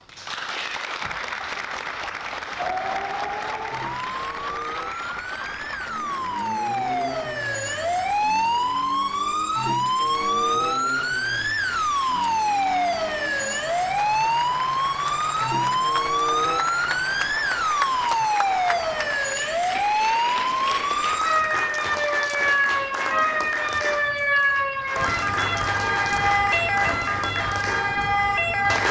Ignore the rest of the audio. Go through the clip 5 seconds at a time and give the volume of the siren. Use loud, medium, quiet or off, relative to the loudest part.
medium, loud, loud, loud, loud, loud.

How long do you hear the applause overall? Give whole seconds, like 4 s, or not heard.
29 s.